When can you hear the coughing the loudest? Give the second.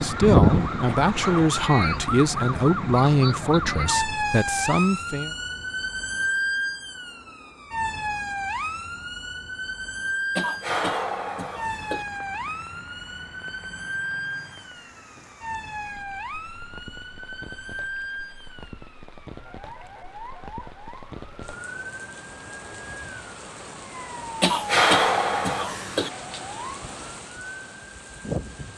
25 s.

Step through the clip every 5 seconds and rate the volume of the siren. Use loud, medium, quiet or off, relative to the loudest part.
loud, medium, medium, quiet, quiet, quiet.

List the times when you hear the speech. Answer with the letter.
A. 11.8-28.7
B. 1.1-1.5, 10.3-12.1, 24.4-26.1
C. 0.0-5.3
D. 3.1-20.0
C.